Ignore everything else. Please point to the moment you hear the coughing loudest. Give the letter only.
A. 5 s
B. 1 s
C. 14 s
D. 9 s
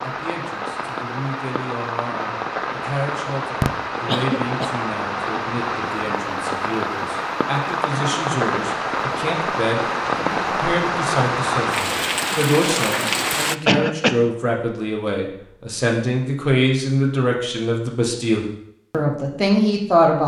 C.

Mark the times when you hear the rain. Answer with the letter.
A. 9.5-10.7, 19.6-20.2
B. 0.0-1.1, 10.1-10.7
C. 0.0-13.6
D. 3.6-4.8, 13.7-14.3
C.